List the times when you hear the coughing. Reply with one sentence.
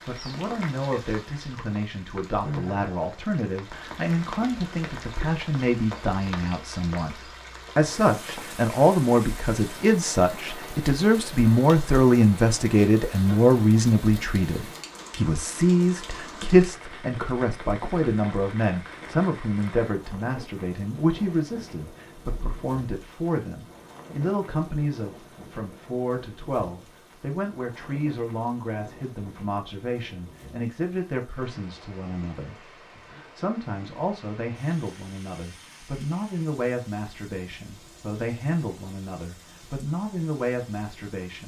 You can't hear the coughing here.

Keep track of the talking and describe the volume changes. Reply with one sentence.
The loudness of the talking goes up, then down.